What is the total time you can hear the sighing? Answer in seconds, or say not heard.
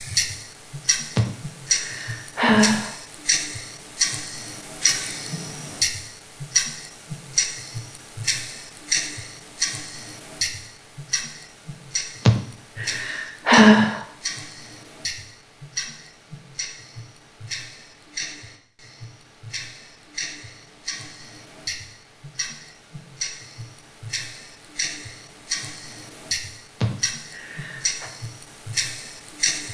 5 s.